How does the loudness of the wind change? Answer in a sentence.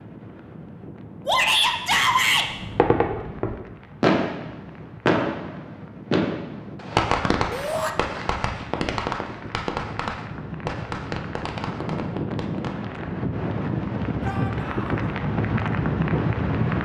The volume of the wind goes up.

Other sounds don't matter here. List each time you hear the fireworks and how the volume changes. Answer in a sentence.
The fireworks can be heard from 2.5 to 12.8 s, getting quieter.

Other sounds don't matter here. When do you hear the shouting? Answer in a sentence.
The shouting can be heard from 1.2 to 2.5 s, from 7.5 to 7.9 s and from 14.2 to 15.1 s.